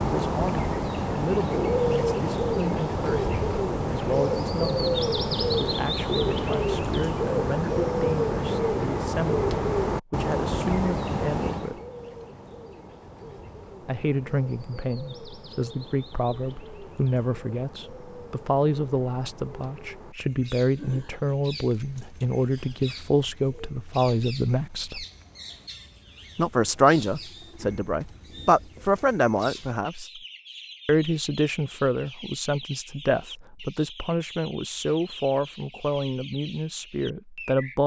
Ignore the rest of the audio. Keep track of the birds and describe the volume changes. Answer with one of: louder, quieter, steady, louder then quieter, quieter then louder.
quieter.